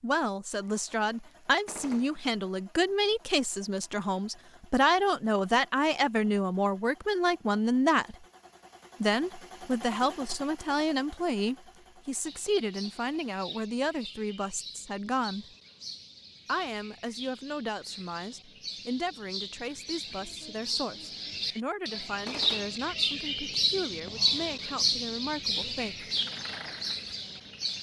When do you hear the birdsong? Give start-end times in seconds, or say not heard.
12.2-27.7.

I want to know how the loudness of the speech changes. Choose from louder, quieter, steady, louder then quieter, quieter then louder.
quieter.